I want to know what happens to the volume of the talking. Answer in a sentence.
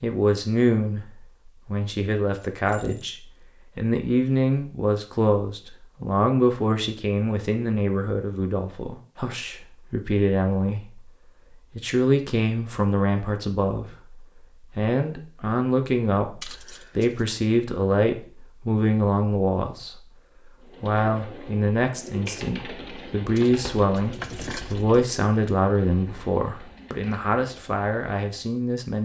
The loudness of the talking stays about the same.